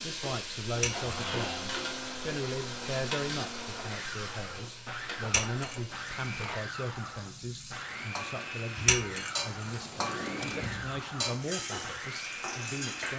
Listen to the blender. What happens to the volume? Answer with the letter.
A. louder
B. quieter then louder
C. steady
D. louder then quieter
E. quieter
C.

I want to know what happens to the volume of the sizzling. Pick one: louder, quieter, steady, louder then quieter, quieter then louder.
quieter then louder.